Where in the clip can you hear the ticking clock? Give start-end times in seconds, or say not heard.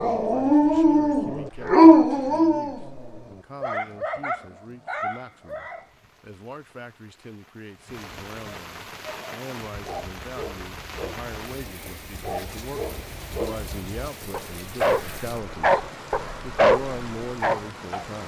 not heard.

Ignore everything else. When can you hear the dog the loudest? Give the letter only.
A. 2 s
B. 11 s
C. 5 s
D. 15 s
A.